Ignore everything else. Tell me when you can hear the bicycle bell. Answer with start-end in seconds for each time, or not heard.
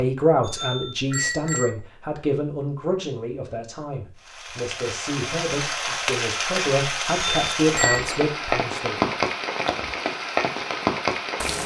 0.4-1.7, 7.0-8.2.